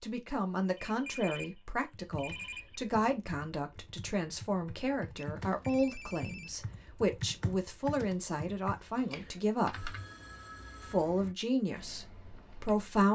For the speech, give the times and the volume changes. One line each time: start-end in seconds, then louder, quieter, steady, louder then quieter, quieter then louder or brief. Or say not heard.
0.0-9.9 steady
10.8-13.1 brief.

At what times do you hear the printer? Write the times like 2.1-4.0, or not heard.
not heard.